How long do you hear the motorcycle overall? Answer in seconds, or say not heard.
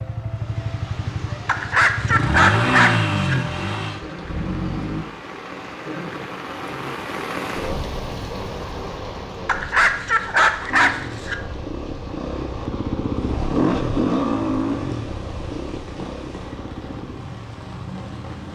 13 s.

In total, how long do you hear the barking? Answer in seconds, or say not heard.
4 s.